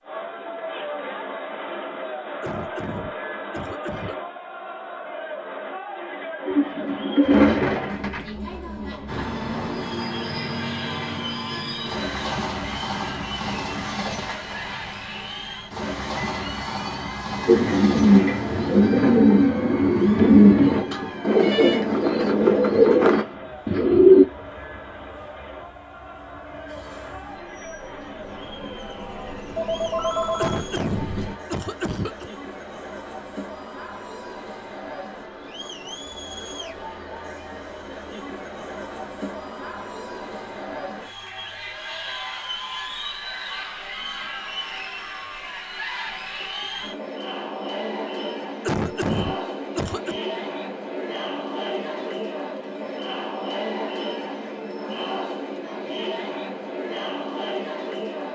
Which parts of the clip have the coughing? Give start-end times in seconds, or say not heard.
2.4-4.2, 30.4-32.3, 48.6-50.1.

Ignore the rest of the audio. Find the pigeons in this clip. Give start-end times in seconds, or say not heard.
6.5-8.3, 17.4-24.2.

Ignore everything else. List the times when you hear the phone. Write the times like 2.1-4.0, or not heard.
20.9-21.9, 29.6-30.6.